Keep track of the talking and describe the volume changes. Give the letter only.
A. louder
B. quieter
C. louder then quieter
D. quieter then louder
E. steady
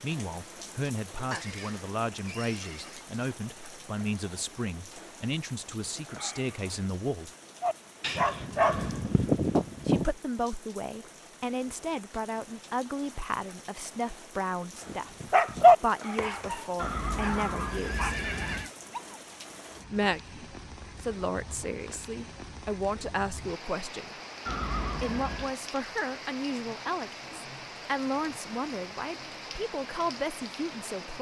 E.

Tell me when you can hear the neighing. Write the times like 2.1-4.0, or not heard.
1.3-3.0, 16.8-18.7, 24.4-25.6.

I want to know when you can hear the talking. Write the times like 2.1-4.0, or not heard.
0.0-7.3, 9.8-18.1, 19.9-24.1, 25.0-31.1.